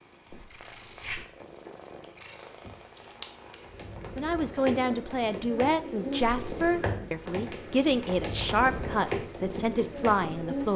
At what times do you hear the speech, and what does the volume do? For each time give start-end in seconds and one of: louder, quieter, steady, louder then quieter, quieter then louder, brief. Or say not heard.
4.2-10.7 steady.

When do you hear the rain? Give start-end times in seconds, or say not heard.
0.1-10.7.